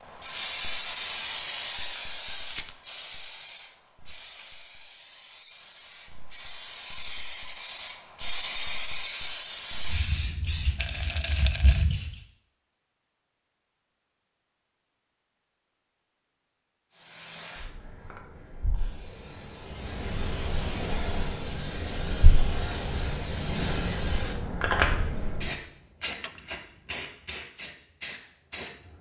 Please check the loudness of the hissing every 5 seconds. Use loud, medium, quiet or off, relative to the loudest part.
loud, loud, loud, quiet, loud, loud.